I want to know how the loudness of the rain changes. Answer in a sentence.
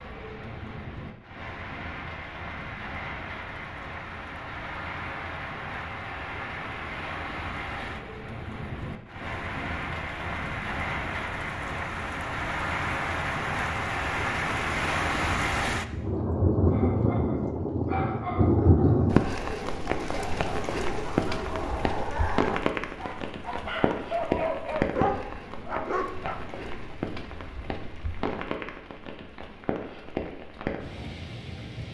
The loudness of the rain goes up, then down.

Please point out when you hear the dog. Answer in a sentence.
You can hear the dog from 16.6 to 26.4 s.